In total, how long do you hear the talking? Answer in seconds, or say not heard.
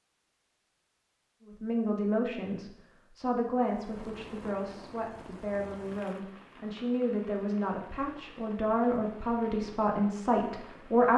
10 s.